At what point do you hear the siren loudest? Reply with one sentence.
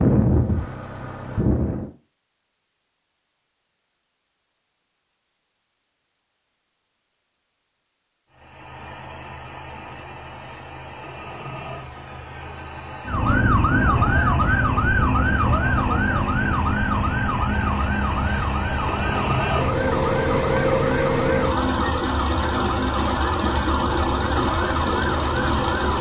The volume of the siren peaks at 14 seconds.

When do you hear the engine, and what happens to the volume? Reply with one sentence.
You can hear the engine briefly from 0.0 to 1.9 s; and from 8.3 to 25.9 s, getting louder.